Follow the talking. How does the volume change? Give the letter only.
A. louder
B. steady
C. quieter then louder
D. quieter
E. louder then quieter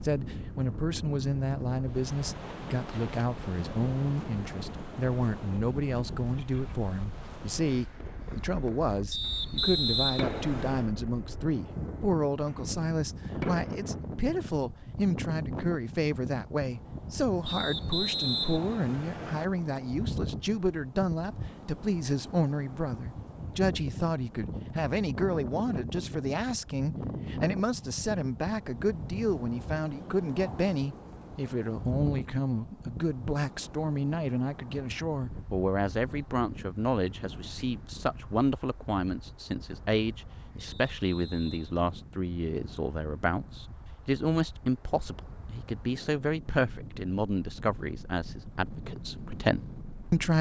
B.